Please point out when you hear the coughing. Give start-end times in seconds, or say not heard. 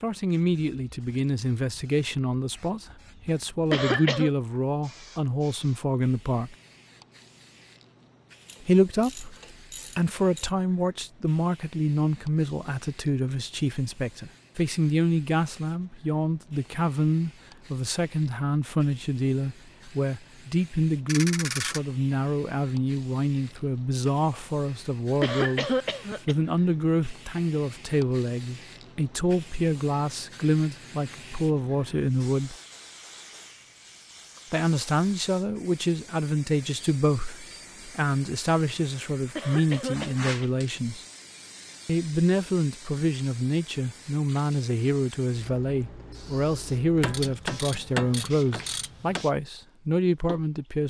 3.7-4.3, 25.2-26.4, 39.4-40.5.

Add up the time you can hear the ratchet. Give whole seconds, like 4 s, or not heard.
5 s.